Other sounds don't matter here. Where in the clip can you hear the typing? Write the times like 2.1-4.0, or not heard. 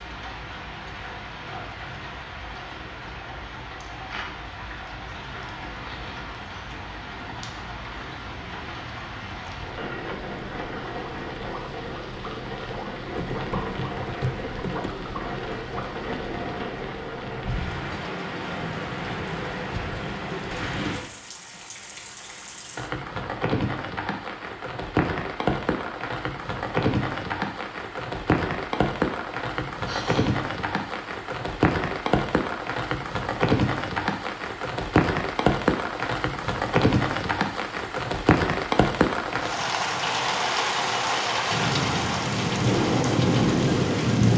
13.2-14.9.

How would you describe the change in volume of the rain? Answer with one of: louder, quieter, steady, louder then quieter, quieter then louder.
louder.